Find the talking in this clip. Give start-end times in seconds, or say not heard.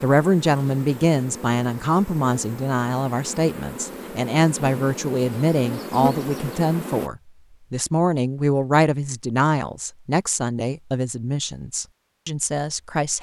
0.0-13.1.